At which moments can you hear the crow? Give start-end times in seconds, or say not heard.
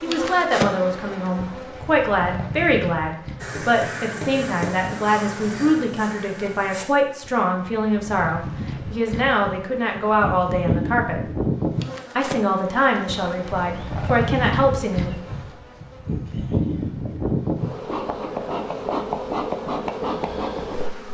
3.4-6.8.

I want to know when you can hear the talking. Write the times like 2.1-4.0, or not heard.
0.0-11.2, 12.2-15.2.